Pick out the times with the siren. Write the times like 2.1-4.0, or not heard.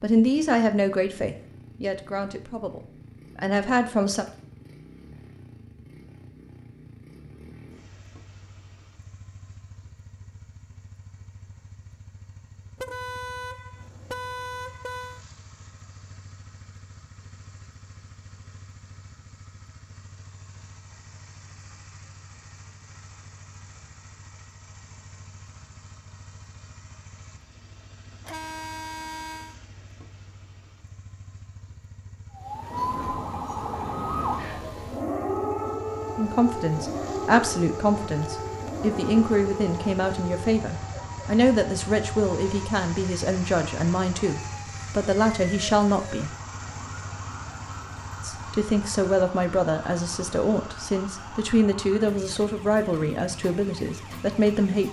32.4-54.8.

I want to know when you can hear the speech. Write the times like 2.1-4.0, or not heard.
0.0-4.2, 36.1-46.4, 48.2-54.8.